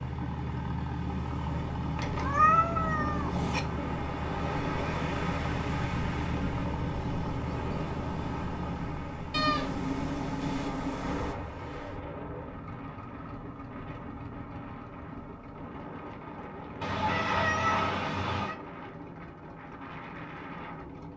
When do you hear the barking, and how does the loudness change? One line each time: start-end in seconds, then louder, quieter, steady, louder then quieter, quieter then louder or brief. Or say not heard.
not heard.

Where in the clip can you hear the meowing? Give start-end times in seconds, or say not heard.
1.9-3.6, 9.3-11.3, 16.8-18.6.